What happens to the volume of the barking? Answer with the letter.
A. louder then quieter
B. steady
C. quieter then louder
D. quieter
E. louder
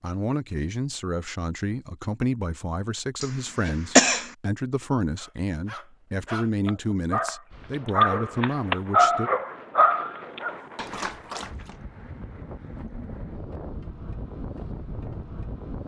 A.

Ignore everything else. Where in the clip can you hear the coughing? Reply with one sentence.
You can hear the coughing from 3.2 to 4.3 s.